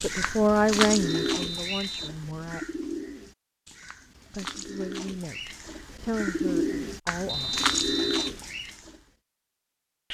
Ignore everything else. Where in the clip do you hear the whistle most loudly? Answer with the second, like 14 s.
8 s.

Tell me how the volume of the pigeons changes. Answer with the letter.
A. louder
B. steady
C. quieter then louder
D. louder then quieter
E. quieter
C.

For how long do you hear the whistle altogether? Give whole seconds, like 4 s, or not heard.
2 s.